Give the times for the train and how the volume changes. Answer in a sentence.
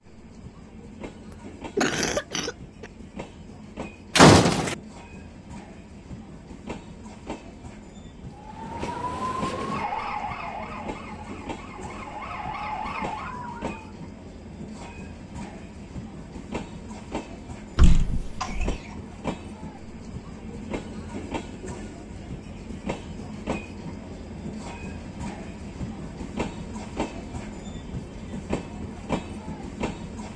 The train can be heard from 0.0 to 30.3 s, getting louder.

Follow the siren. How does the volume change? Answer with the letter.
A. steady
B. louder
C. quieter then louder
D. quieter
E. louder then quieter
C.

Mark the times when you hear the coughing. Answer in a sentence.
You can hear the coughing from 1.3 to 2.9 s and from 17.9 to 19.1 s.